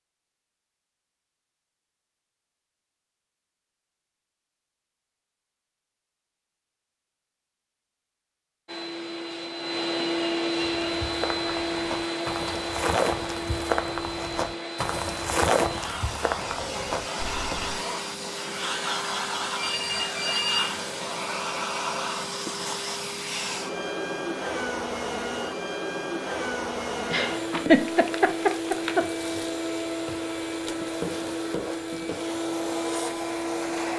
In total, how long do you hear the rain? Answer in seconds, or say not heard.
not heard.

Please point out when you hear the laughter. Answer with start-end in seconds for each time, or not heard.
27.1-29.1.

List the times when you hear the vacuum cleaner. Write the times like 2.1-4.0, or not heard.
8.7-33.9.